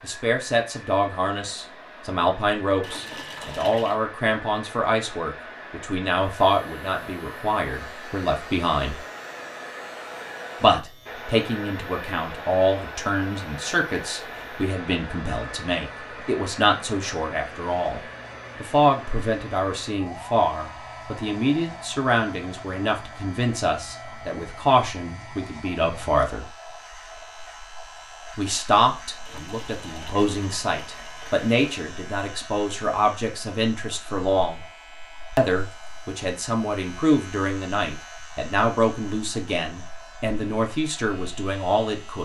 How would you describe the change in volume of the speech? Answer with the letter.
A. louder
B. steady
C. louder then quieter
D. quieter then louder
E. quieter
B.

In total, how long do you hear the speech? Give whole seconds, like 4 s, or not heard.
38 s.